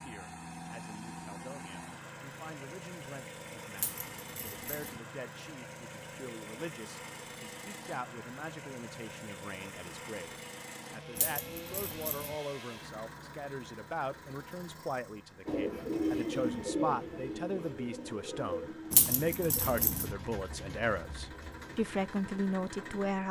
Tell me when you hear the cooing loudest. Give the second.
16 s.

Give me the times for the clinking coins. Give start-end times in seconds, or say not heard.
3.8-4.9, 11.2-12.3, 18.9-20.1.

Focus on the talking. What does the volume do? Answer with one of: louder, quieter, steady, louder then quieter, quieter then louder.
louder.